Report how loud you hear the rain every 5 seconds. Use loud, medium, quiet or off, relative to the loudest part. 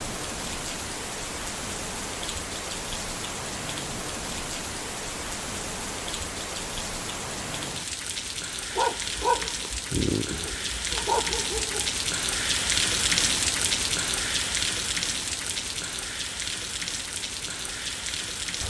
medium, medium, loud, medium.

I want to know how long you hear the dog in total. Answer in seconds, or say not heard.
3 s.